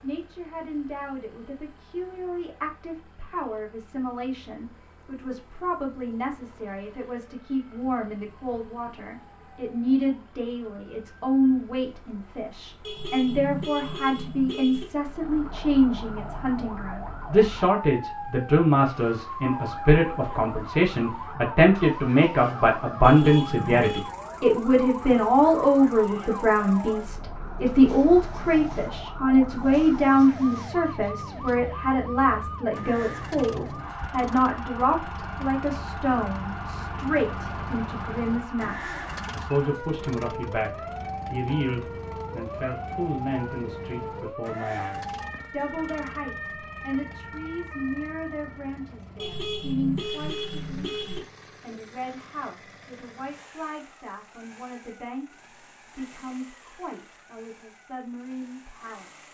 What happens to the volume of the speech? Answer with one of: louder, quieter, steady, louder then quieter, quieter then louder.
louder then quieter.